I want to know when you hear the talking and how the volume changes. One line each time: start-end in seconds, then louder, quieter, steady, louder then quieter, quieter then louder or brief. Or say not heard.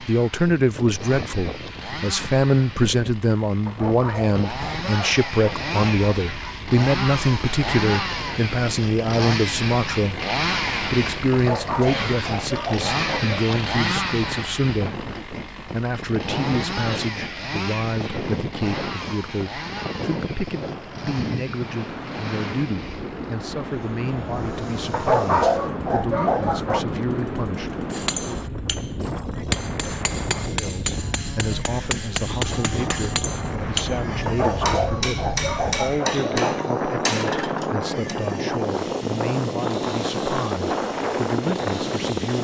0.0-28.6 quieter
30.5-42.3 steady.